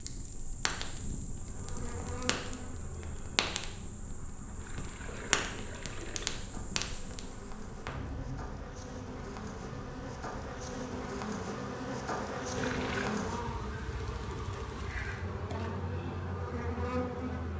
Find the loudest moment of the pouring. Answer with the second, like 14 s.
13 s.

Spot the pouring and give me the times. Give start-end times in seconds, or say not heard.
4.5-6.4, 12.6-13.2.